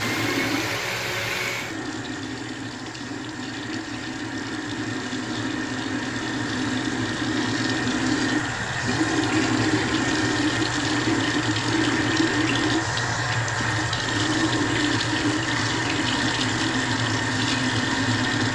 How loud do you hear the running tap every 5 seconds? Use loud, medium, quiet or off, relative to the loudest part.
medium, loud, loud, loud.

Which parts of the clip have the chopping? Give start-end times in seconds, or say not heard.
not heard.